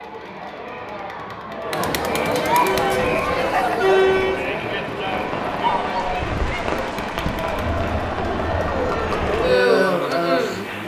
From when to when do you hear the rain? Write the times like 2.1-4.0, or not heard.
2.9-10.8.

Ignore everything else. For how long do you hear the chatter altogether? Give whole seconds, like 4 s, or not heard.
11 s.